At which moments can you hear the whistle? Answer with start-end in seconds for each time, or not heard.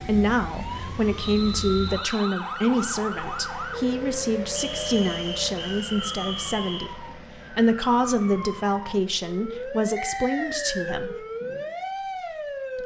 1.1-2.4, 4.5-6.8, 9.9-11.0.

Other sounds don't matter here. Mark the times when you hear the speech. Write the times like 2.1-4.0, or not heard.
0.0-11.2.